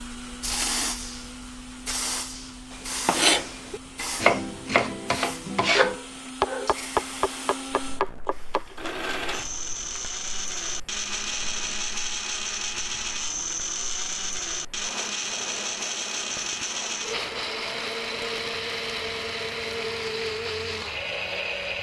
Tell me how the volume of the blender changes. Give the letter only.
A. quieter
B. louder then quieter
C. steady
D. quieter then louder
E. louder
E.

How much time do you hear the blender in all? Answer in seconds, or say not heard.
22 s.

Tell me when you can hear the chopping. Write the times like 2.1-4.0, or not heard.
2.7-8.9.